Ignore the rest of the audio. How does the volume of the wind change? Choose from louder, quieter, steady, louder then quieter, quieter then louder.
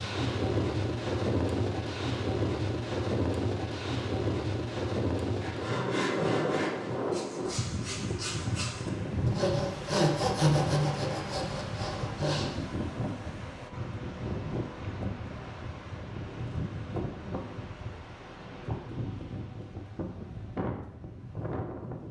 quieter.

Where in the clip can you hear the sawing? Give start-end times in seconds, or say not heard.
5.3-12.6.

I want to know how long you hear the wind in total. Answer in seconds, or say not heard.
22 s.